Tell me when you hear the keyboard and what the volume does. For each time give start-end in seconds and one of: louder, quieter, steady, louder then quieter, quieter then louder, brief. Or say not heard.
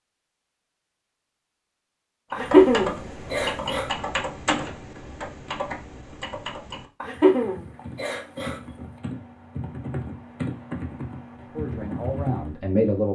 2.3-12.6 quieter then louder.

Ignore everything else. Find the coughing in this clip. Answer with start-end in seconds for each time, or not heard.
2.3-3.9, 7.0-8.6.